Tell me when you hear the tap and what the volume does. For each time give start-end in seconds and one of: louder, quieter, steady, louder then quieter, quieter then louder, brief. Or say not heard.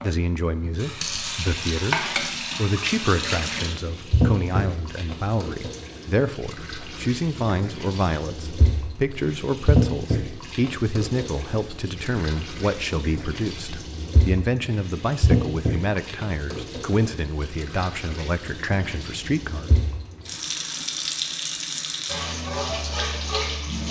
0.0-23.8 quieter then louder.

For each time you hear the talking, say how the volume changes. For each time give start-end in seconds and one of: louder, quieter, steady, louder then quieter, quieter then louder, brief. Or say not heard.
0.0-19.7 steady.